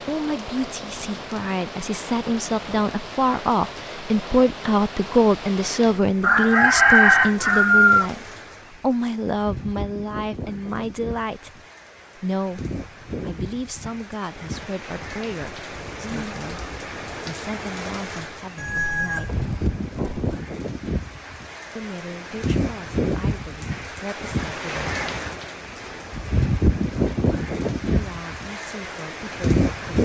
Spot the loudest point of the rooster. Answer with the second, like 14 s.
7 s.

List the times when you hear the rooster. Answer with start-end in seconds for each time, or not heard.
6.2-8.1, 18.6-20.4.